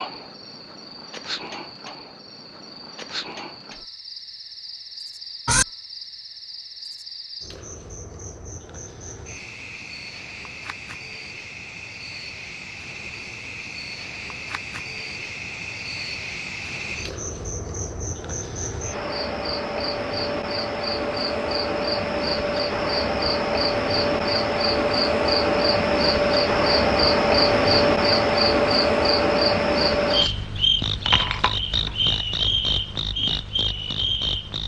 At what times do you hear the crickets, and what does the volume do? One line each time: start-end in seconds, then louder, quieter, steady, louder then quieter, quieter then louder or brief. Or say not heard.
0.0-34.6 louder.